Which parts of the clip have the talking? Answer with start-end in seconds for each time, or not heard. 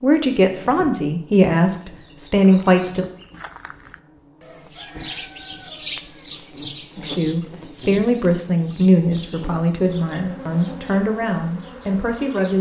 0.0-3.0, 7.0-12.5.